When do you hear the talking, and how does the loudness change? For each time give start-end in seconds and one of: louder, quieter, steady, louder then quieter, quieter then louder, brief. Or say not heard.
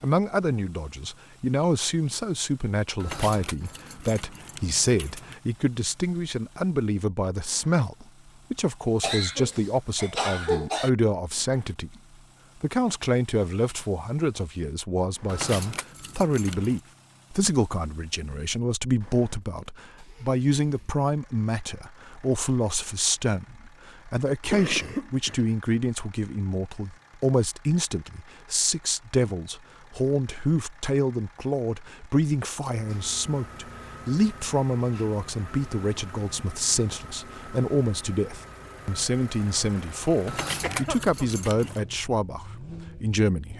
0.0-11.9 steady
12.6-43.5 steady.